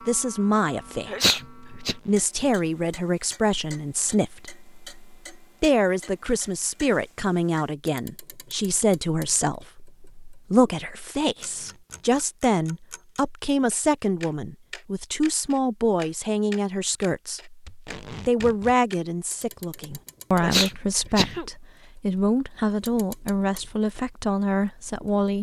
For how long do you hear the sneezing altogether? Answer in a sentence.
The sneezing can be heard for 2 seconds in total.